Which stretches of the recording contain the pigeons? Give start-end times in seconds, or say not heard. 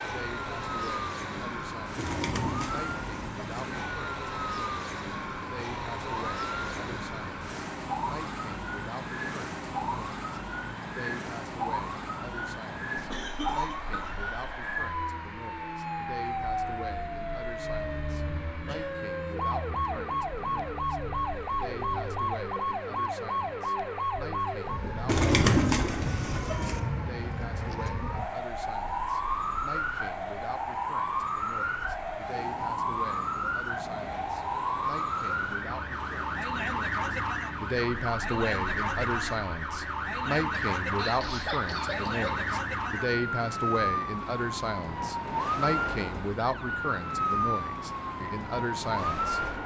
1.9-3.7, 25.1-26.8.